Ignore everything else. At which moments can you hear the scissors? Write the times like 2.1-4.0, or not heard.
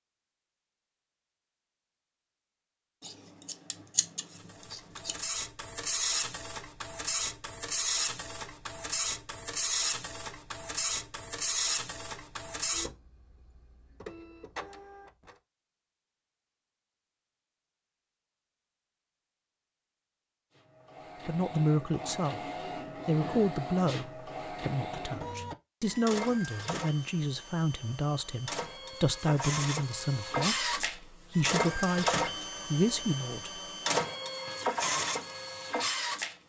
3.0-5.2.